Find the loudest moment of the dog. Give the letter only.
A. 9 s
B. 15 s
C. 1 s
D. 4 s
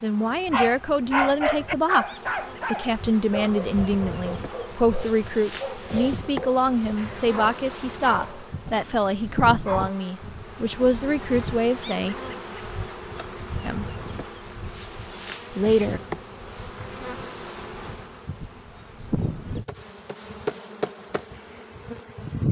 C.